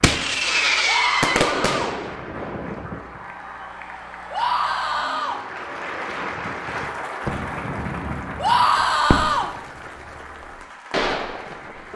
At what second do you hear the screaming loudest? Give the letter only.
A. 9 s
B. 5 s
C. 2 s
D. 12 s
A.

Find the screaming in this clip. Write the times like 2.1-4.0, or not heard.
0.8-1.9, 4.3-5.4, 8.3-9.5.